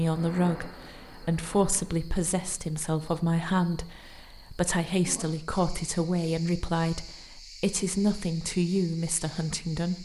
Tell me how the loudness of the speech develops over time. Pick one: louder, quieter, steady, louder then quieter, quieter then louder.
steady.